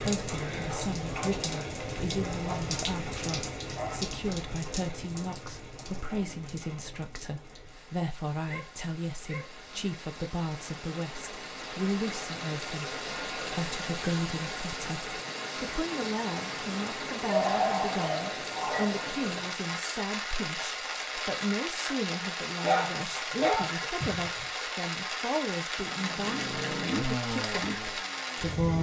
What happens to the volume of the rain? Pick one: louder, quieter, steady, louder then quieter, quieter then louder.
quieter then louder.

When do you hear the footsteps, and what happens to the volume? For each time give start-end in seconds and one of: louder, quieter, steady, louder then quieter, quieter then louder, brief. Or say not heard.
not heard.